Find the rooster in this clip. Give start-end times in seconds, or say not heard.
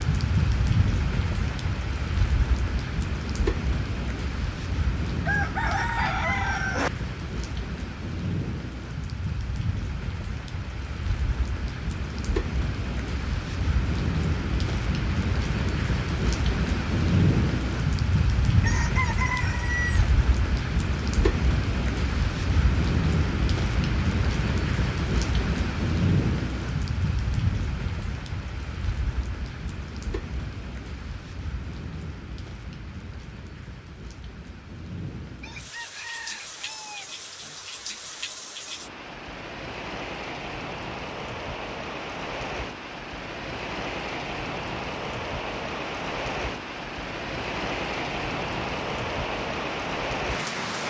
5.2-6.9, 18.6-20.1, 35.2-37.6.